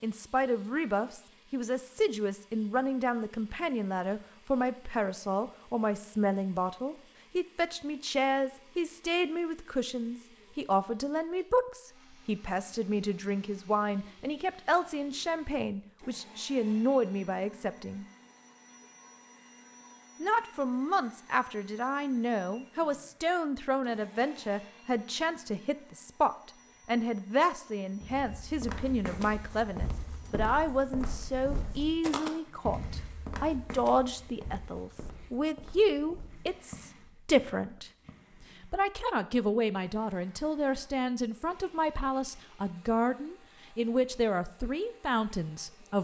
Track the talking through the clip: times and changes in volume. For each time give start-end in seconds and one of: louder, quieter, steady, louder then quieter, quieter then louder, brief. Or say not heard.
0.0-18.1 steady
20.2-45.9 steady.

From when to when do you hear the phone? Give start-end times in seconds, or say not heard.
not heard.